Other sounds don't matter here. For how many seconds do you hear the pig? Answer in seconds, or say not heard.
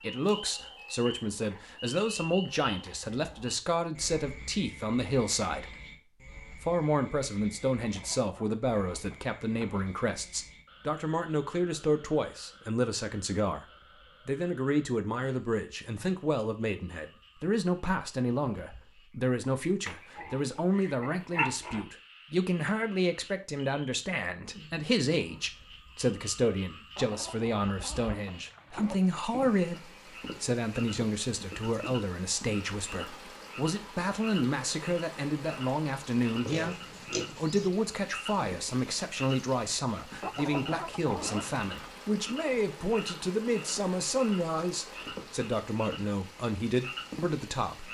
3 s.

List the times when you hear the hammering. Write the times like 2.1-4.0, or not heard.
not heard.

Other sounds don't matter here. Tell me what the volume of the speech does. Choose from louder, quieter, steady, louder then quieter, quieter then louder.
steady.